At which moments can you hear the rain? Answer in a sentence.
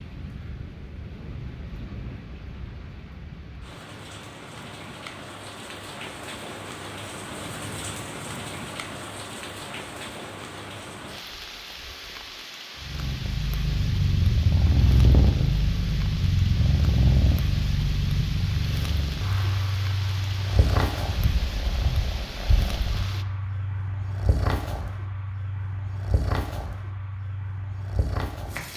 The rain can be heard from 0.0 to 23.2 s.